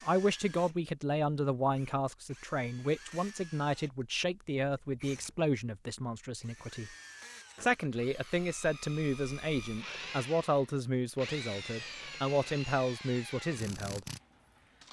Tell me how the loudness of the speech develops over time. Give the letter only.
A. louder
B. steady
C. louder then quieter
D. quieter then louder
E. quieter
B.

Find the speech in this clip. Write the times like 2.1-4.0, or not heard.
0.0-6.9, 7.6-14.1.